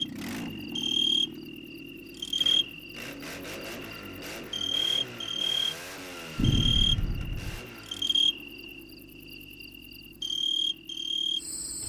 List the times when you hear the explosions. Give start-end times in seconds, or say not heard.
6.3-7.7.